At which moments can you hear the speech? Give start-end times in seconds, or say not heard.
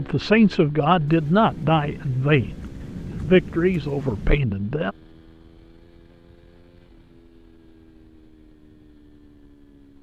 0.0-5.0.